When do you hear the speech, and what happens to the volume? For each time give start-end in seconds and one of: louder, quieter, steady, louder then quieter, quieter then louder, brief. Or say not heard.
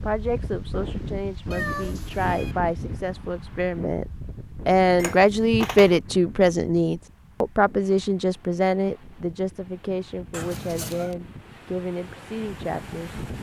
0.0-13.2 louder then quieter.